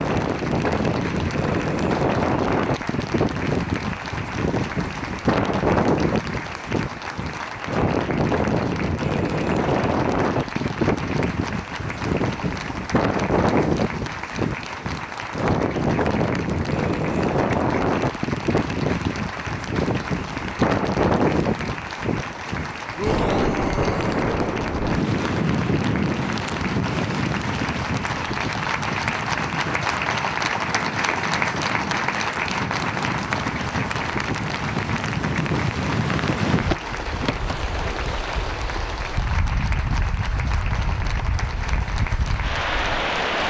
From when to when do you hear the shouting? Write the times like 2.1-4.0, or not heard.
22.9-24.2.